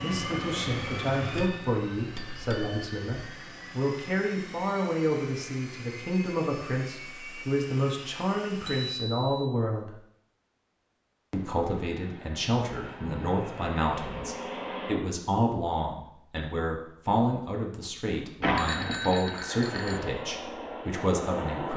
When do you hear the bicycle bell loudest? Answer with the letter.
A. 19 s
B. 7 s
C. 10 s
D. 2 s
A.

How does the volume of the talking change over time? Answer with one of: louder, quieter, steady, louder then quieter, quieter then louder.
steady.